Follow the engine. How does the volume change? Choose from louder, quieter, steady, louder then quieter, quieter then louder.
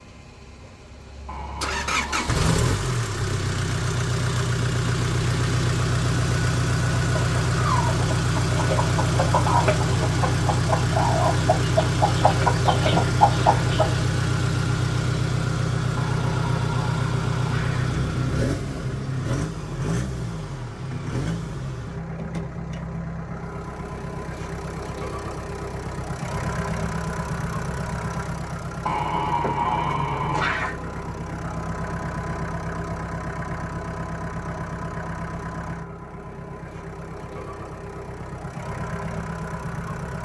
quieter.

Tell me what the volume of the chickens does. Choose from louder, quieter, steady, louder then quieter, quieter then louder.
louder.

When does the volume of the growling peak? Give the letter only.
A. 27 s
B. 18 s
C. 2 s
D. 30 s
D.